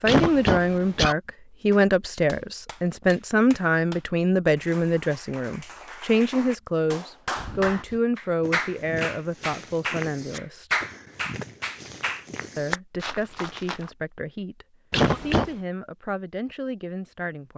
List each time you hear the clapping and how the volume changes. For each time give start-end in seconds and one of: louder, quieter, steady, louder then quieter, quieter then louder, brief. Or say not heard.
1.7-12.8 louder.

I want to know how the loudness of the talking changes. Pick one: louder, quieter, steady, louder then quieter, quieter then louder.
quieter.